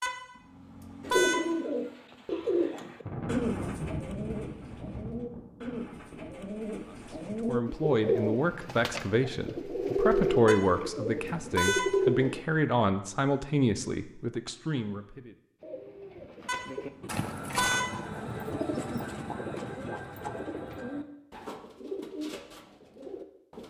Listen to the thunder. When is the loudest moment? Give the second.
4 s.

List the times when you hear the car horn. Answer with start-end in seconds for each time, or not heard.
0.0-1.4, 10.4-11.9, 16.4-17.9.